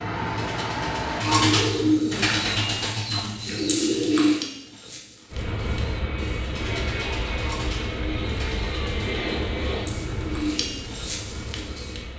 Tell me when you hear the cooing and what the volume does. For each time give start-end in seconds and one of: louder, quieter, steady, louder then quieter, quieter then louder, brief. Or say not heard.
0.2-12.1 quieter then louder.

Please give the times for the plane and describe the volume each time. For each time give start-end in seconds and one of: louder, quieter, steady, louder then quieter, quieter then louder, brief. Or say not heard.
0.0-2.0 brief
5.3-12.1 quieter.